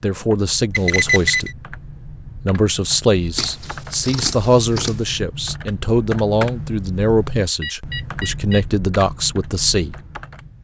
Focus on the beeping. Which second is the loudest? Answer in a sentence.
The loudest moment of the beeping is at 1 second.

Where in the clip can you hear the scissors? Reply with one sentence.
The scissors can be heard from 3.4 to 5.2 s.